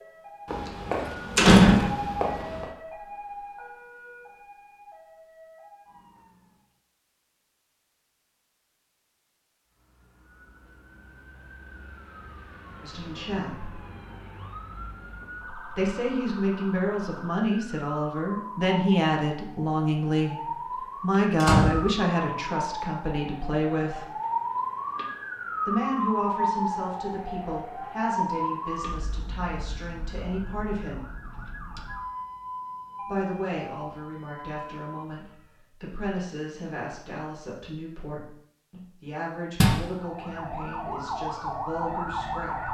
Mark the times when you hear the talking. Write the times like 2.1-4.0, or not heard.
12.8-13.8, 15.8-24.1, 25.6-31.1, 33.0-42.6.